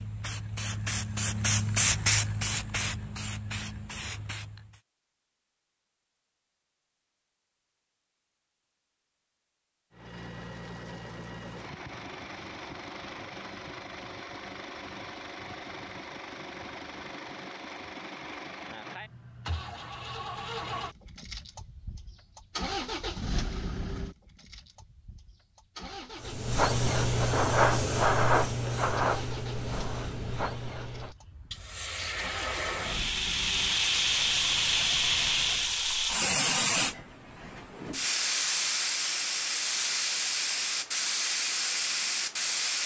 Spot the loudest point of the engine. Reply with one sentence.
The volume of the engine peaks at 23 seconds.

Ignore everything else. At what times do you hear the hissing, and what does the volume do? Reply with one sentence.
You can hear the hissing from 0.0 to 4.8 s, getting louder then quieter; and from 26.2 to 42.8 s, getting quieter then louder.